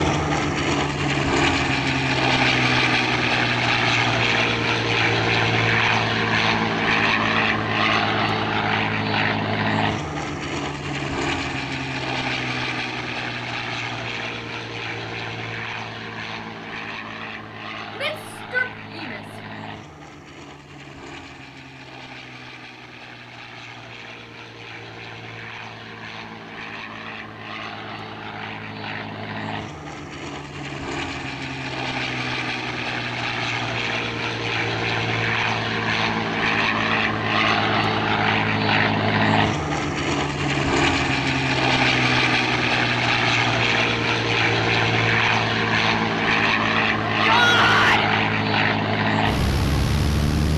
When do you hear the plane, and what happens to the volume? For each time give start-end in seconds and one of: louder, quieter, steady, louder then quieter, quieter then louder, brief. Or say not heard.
0.0-50.5 quieter then louder.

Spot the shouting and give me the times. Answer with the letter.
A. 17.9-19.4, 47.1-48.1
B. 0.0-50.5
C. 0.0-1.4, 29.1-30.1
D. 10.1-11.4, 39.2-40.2
A.